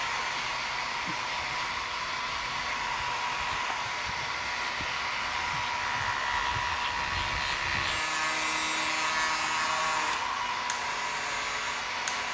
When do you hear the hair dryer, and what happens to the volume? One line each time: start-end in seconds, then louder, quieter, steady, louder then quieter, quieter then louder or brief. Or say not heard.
0.0-12.2 steady.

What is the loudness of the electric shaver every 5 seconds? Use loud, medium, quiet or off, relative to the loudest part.
medium, loud, medium.